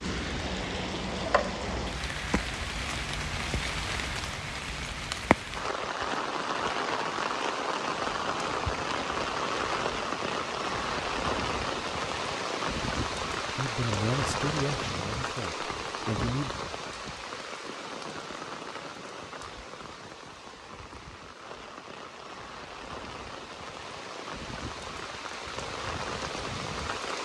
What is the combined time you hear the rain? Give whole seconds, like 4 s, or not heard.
27 s.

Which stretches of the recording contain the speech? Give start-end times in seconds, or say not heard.
13.5-16.6.